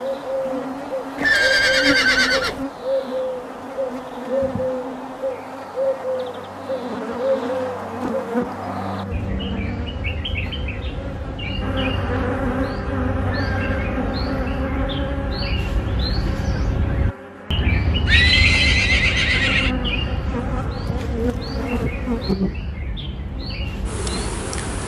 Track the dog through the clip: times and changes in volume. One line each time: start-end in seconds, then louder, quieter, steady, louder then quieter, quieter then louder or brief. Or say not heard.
not heard.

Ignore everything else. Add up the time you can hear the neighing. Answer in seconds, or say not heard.
4 s.